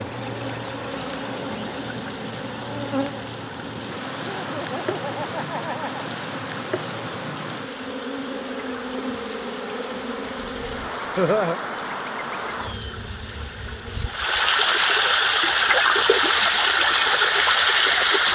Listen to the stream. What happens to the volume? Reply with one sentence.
The volume of the stream goes up.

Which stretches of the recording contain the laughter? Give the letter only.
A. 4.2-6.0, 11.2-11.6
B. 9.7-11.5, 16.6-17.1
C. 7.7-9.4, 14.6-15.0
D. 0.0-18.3
A.